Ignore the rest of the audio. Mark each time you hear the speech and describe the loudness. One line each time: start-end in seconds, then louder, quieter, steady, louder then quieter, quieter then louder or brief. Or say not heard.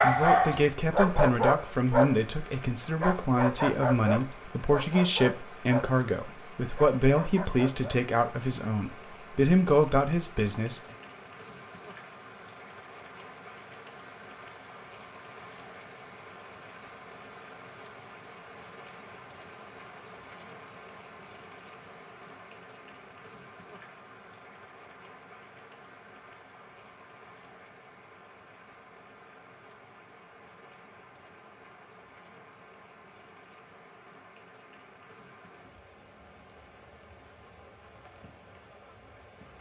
0.0-10.8 steady.